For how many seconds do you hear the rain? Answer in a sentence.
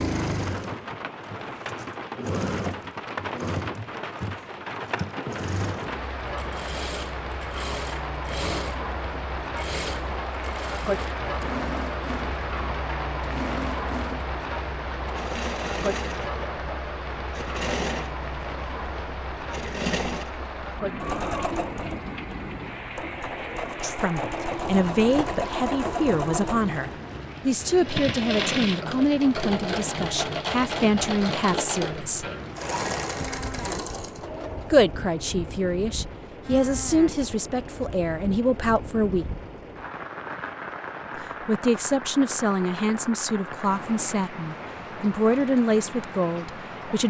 You can hear the rain for 47 seconds altogether.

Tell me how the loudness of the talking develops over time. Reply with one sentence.
The loudness of the talking stays about the same.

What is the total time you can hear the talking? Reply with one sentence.
You can hear the talking for 19 seconds altogether.